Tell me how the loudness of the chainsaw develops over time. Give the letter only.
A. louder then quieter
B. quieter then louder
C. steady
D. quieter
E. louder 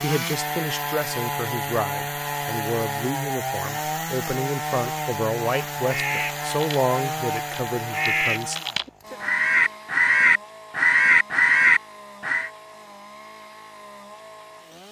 D.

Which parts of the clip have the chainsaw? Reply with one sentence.
You can hear the chainsaw from 0.0 to 14.8 s.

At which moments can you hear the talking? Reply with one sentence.
You can hear the talking from 0.0 to 8.6 s.